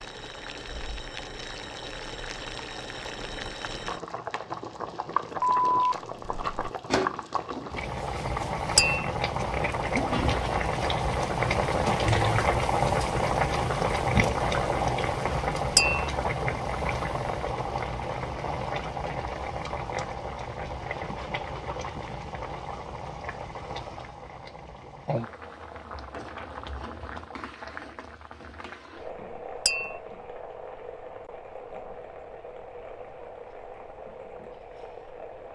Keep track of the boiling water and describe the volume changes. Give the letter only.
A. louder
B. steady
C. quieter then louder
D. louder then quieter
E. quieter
D.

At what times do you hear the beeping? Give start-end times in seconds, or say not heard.
5.4-6.7.